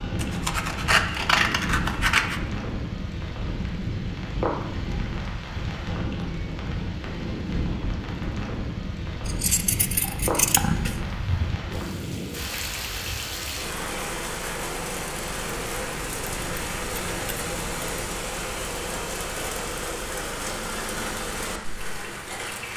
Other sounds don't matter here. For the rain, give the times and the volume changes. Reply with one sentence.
The rain can be heard from 0.0 to 22.7 s, at a steady volume.